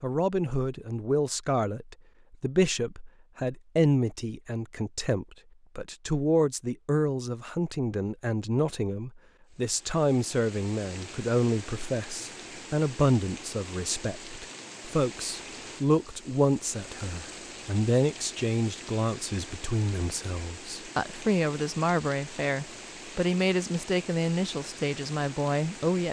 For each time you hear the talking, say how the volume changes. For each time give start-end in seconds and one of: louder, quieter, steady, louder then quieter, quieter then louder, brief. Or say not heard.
0.0-26.0 steady.